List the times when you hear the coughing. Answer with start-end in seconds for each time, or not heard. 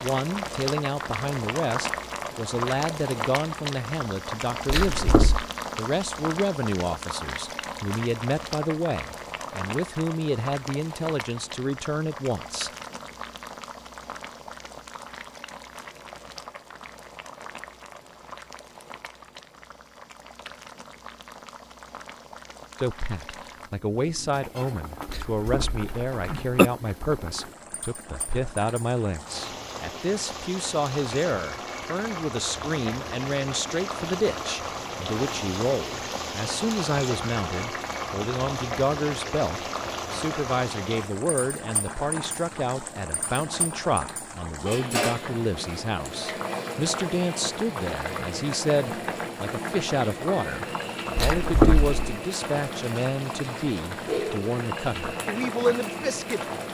4.7-5.5, 25.1-26.7, 51.1-52.1.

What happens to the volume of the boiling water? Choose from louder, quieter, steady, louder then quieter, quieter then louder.
quieter then louder.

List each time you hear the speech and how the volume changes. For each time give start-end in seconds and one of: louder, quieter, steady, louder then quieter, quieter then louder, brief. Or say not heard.
0.0-12.7 steady
22.8-56.5 steady.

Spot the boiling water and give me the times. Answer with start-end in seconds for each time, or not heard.
0.0-56.6.